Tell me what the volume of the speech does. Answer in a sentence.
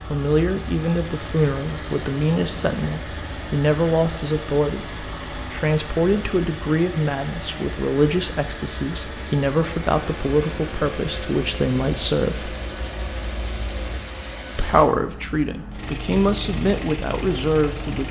The loudness of the speech stays about the same.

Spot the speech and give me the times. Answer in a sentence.
The speech can be heard from 0.1 to 12.6 s and from 14.6 to 18.0 s.